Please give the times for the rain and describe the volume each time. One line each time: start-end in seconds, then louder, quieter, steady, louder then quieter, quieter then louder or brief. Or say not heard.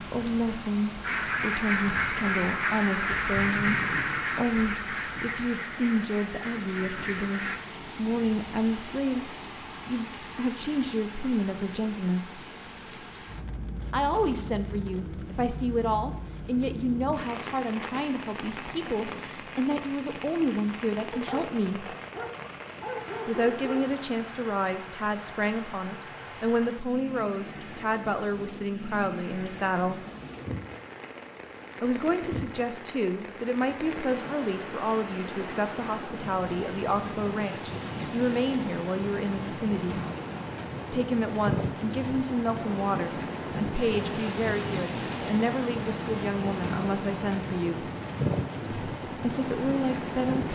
0.0-50.4 louder.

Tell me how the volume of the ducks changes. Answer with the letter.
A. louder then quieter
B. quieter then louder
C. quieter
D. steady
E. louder
C.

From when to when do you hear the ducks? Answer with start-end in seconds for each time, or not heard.
1.0-7.6.